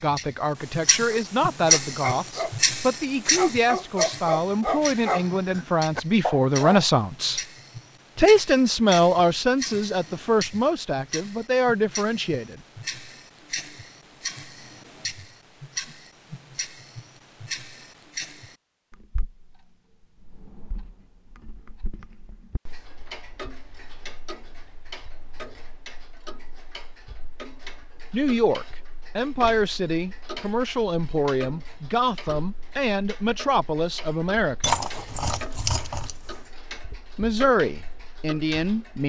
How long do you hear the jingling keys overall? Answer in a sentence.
The jingling keys can be heard for 2 seconds in total.